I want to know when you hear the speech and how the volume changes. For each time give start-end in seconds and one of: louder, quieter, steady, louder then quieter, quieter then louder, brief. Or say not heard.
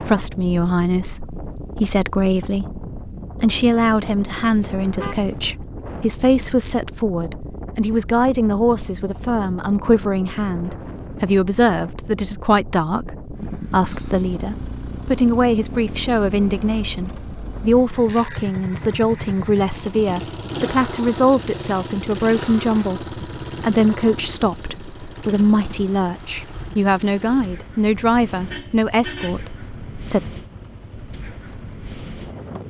0.0-2.8 brief
3.4-30.3 steady.